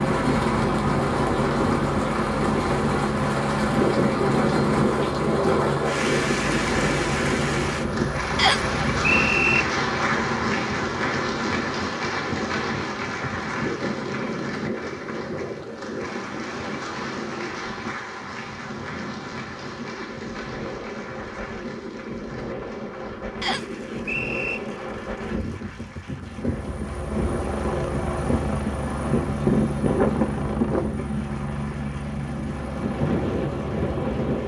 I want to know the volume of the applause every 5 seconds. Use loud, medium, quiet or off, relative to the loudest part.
loud, loud, loud, medium, quiet, quiet, quiet.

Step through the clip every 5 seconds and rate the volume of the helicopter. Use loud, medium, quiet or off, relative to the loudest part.
loud, loud, off, off, off, loud, loud.